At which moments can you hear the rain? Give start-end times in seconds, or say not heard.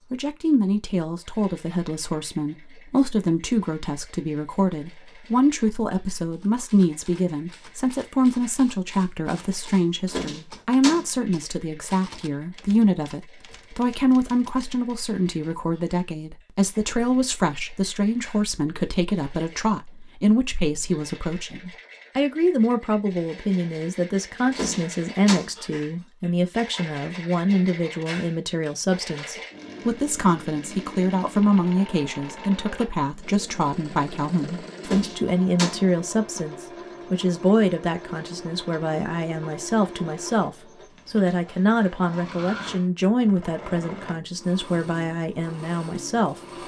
not heard.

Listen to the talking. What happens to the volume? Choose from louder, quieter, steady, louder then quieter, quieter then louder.
steady.